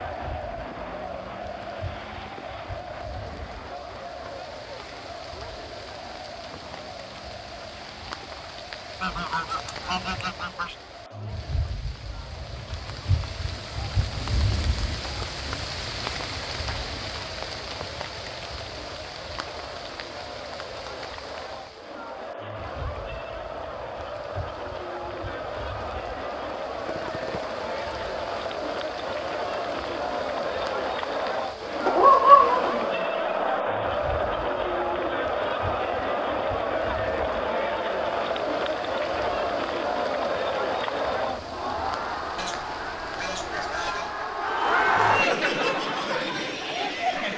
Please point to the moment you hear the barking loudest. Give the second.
32 s.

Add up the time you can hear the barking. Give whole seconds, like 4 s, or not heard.
2 s.